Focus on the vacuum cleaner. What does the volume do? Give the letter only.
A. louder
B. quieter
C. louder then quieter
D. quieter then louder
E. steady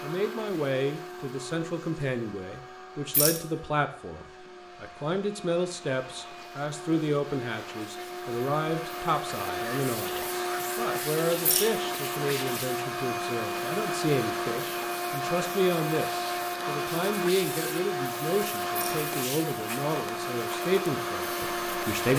A.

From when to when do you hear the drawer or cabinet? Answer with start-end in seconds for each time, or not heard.
not heard.